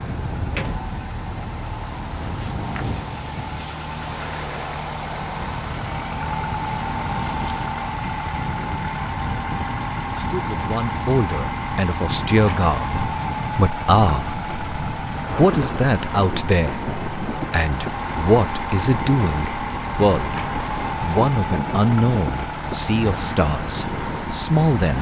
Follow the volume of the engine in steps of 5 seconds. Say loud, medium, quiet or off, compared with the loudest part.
medium, loud, loud, loud, loud.